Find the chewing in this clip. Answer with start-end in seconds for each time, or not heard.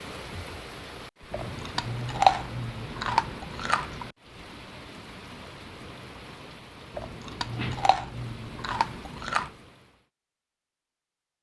1.3-4.1, 7.0-9.5.